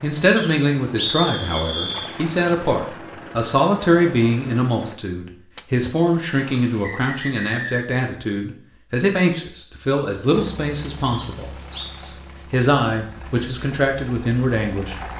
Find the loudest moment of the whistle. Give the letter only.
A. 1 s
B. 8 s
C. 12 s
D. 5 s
A.